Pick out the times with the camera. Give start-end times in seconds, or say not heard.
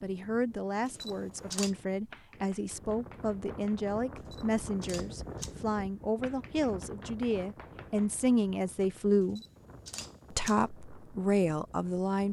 0.8-1.8, 4.3-5.5, 9.3-10.6.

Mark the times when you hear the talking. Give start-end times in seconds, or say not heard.
0.0-9.4, 10.3-12.2.